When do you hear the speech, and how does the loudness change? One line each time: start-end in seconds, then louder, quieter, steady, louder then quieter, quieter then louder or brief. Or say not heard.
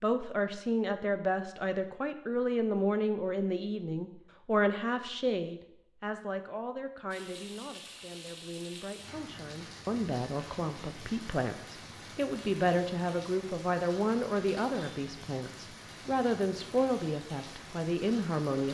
0.0-18.6 quieter then louder.